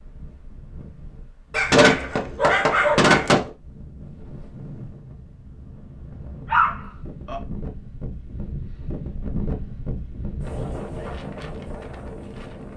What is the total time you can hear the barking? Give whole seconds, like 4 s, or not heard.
3 s.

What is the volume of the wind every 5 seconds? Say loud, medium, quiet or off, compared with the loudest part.
medium, loud, loud.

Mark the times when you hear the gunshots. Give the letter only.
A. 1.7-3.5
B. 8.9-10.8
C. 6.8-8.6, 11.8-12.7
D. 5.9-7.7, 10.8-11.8
A.